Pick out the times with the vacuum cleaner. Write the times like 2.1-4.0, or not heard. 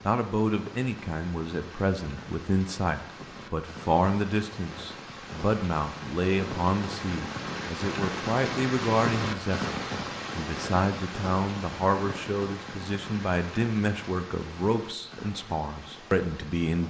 not heard.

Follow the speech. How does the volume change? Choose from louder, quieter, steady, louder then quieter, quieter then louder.
steady.